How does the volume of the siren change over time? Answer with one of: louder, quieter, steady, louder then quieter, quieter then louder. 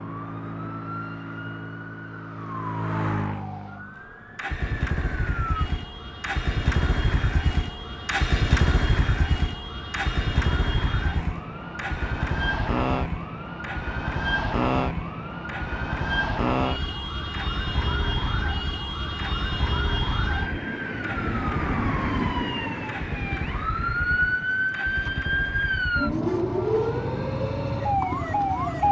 louder.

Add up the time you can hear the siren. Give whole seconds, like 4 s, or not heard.
29 s.